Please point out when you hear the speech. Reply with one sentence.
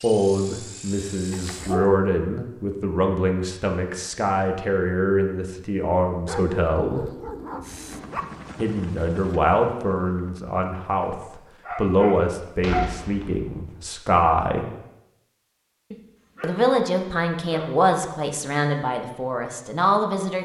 You can hear the speech from 0.0 to 7.0 s, from 8.6 to 14.7 s and from 16.4 to 20.4 s.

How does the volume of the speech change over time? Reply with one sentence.
The loudness of the speech stays about the same.